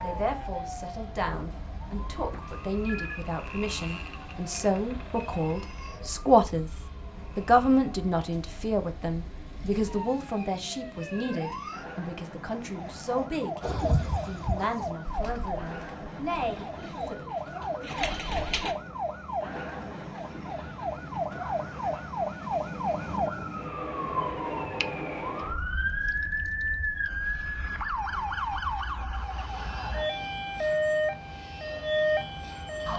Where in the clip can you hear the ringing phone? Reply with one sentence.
You can hear the ringing phone from 2.1 to 3.2 s.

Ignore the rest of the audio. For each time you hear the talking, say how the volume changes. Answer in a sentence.
The talking can be heard from 0.0 to 17.4 s, getting louder then quieter.